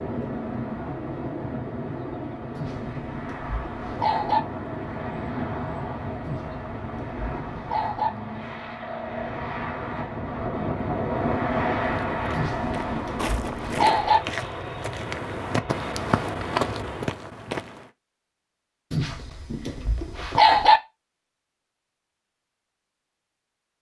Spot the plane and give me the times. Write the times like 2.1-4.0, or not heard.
0.0-17.1.